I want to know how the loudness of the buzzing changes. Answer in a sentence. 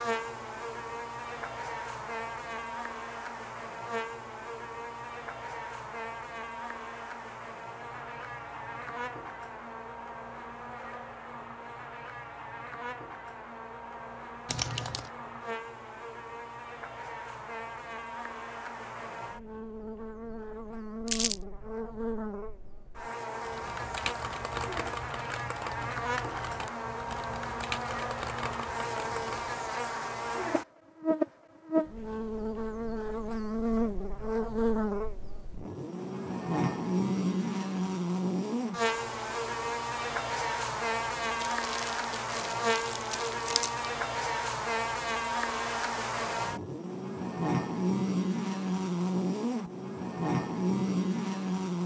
The loudness of the buzzing goes up.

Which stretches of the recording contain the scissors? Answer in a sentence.
You can't hear the scissors here.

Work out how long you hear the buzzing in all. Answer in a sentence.
You can hear the buzzing for 52 seconds altogether.